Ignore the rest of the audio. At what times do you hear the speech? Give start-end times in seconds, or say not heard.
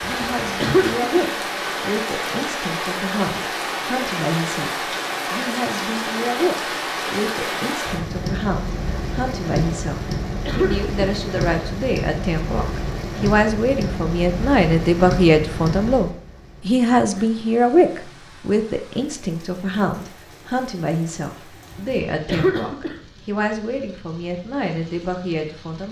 0.0-25.8.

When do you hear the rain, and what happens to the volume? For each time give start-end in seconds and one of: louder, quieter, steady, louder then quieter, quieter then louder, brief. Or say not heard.
0.0-25.8 quieter.